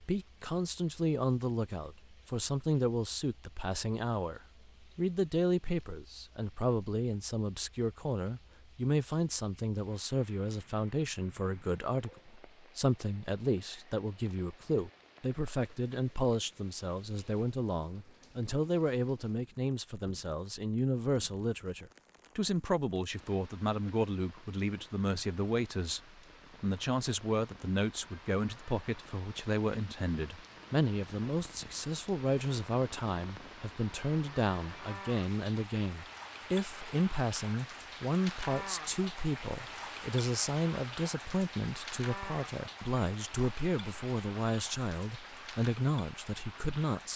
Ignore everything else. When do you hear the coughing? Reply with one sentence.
The coughing can't be heard in this clip.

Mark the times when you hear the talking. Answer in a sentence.
You can hear the talking from 0.0 to 47.1 s.